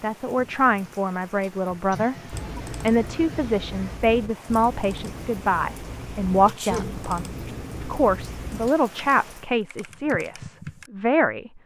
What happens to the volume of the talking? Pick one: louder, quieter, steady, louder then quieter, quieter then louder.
steady.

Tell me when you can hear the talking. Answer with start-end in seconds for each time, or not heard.
0.0-11.6.